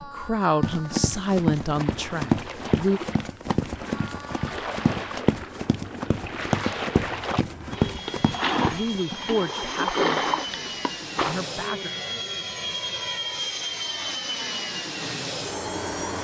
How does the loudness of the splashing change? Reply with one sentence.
The loudness of the splashing goes up.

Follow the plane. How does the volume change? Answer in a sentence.
The loudness of the plane goes up.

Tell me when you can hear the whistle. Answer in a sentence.
The whistle can't be heard in this clip.